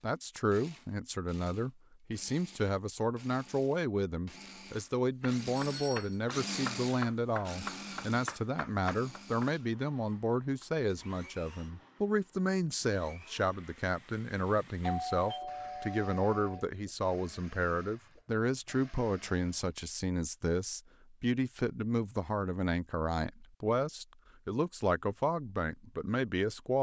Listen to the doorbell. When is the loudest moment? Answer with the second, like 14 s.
15 s.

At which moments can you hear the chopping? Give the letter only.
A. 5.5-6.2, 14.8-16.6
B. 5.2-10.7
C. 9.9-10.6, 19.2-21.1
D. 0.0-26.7
B.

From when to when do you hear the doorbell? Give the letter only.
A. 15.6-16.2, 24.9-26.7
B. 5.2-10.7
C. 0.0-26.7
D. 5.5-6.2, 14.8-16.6
D.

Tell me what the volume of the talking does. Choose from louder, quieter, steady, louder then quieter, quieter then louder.
steady.